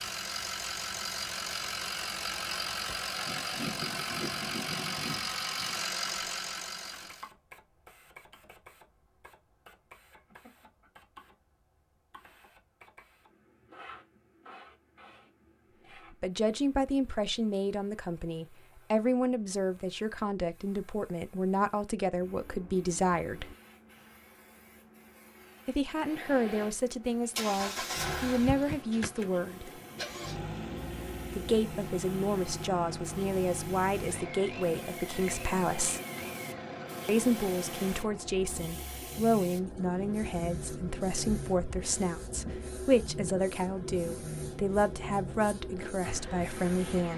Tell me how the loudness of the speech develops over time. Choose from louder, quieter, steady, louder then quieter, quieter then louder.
steady.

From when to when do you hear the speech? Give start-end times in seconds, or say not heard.
16.2-23.5, 25.6-29.7, 31.4-36.0, 37.0-47.1.